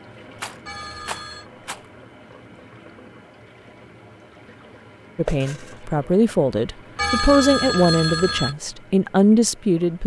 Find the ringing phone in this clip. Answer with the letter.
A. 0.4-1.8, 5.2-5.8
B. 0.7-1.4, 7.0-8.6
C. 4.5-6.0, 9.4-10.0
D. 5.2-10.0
B.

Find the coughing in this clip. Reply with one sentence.
The coughing can't be heard in this clip.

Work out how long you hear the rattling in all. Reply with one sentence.
You can hear the rattling for 2 seconds altogether.